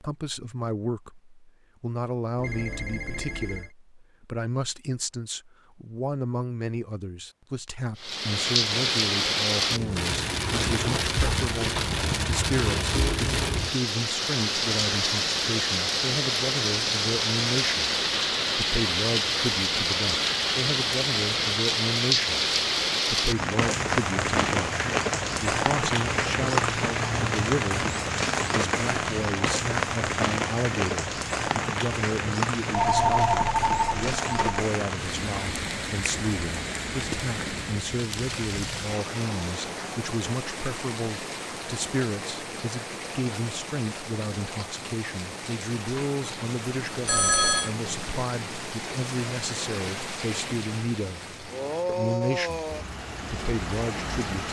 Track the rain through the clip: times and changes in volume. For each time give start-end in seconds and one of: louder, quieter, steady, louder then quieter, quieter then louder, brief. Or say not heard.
8.0-54.4 quieter.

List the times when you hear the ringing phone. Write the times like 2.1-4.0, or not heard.
2.4-3.8, 32.7-34.5, 47.0-47.7.